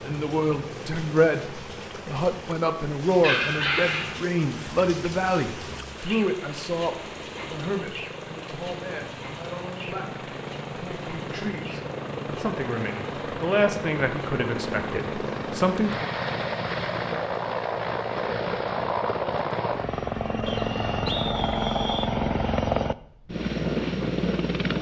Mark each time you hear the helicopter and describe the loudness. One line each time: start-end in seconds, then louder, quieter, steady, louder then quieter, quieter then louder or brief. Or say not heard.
0.0-24.7 louder.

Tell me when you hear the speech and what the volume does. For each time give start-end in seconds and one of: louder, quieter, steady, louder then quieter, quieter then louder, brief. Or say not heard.
0.0-16.1 quieter then louder.